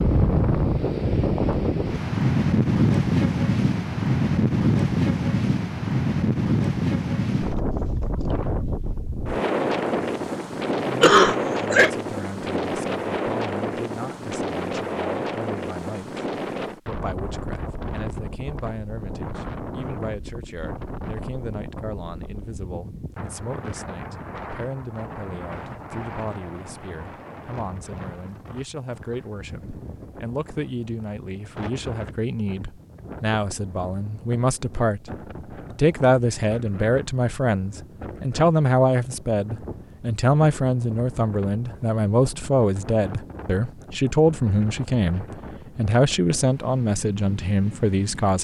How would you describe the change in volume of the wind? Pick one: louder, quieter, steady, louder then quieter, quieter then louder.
quieter.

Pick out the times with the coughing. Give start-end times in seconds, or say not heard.
11.0-11.9.